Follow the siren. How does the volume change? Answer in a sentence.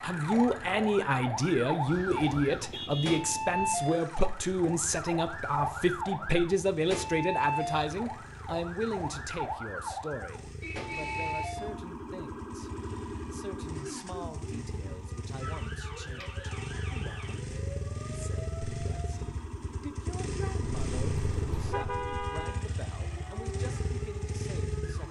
The volume of the siren goes down.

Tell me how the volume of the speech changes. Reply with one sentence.
The volume of the speech goes down.